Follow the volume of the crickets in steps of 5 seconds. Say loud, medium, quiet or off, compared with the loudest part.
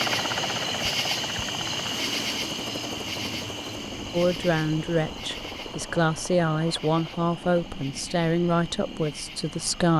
loud, medium.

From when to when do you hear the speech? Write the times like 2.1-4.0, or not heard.
4.1-9.9.